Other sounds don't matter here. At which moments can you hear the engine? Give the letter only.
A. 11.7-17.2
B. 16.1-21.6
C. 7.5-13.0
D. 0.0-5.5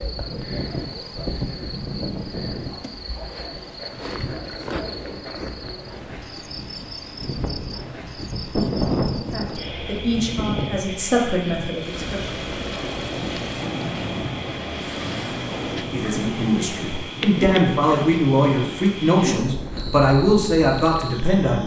A.